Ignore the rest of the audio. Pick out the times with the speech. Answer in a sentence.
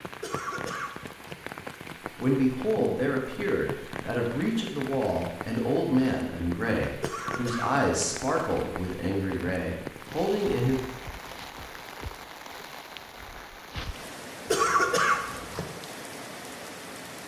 The speech can be heard from 2.1 to 10.8 s.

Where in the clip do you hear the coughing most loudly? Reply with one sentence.
The volume of the coughing peaks at 15 seconds.